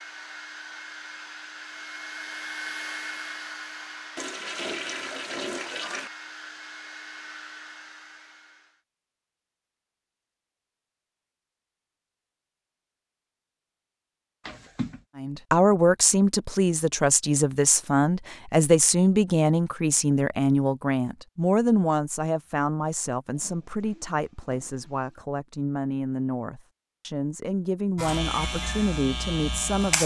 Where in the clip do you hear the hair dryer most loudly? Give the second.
3 s.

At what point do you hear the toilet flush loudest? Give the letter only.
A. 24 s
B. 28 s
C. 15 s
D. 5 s
D.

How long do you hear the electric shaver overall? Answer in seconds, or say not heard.
2 s.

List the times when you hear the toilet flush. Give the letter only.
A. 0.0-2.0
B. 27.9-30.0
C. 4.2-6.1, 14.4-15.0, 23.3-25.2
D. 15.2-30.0
C.